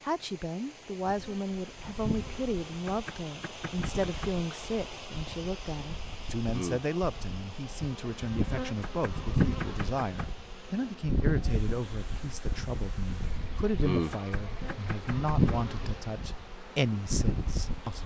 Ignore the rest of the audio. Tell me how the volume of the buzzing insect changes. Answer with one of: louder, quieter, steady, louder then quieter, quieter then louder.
louder.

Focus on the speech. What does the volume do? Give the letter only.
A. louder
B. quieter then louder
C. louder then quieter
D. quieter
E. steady
E.